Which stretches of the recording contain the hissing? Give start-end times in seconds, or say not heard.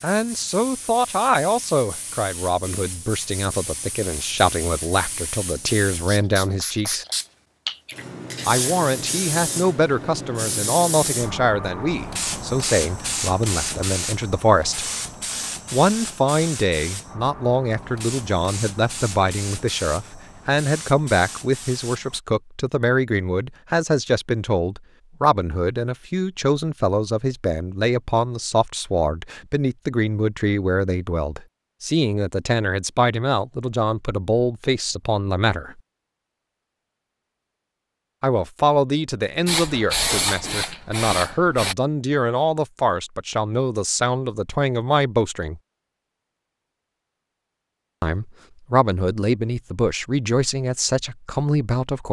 0.0-22.2, 39.5-41.8.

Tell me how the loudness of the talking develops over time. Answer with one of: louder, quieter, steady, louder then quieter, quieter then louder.
steady.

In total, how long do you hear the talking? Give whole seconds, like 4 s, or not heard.
45 s.